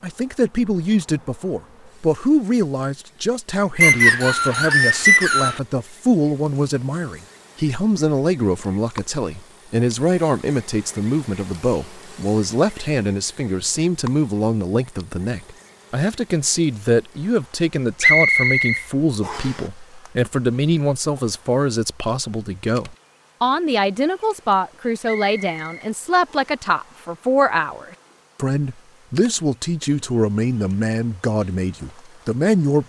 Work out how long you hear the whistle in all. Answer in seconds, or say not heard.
5 s.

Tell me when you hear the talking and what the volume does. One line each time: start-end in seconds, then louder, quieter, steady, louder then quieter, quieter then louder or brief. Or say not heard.
0.0-32.8 steady.